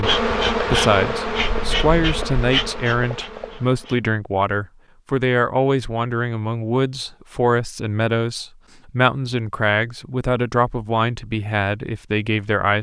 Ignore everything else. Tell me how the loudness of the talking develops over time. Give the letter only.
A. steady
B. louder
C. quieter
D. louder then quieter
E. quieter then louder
A.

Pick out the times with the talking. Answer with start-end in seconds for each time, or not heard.
0.0-12.7.